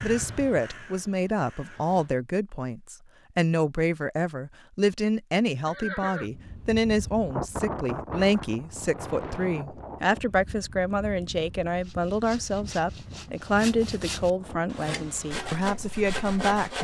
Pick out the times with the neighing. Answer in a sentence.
The neighing can be heard from 5.7 to 6.3 s.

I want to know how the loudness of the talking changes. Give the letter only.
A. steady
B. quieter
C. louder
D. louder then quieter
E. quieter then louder
A.